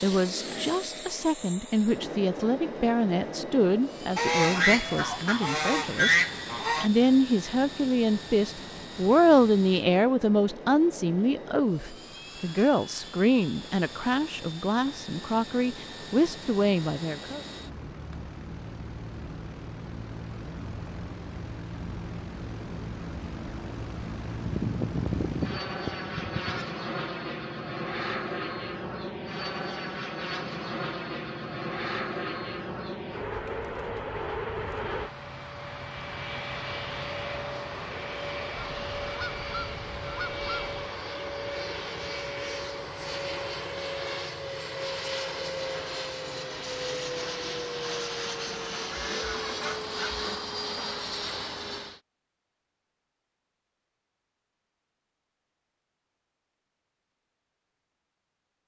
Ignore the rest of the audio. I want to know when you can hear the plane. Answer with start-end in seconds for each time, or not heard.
0.0-52.0.